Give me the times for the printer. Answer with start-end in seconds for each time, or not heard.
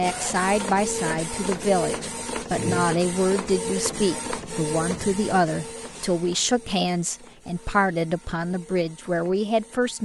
0.0-10.0.